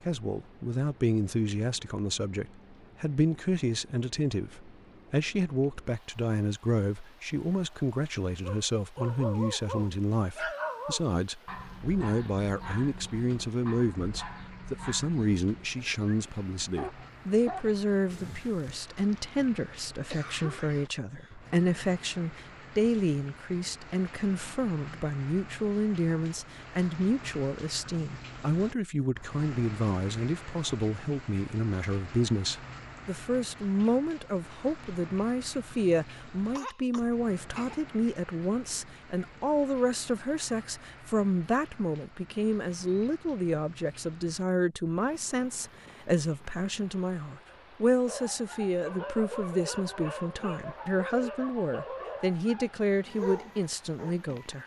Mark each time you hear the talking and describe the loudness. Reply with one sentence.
You can hear the talking from 0.1 to 54.6 s, at a steady volume.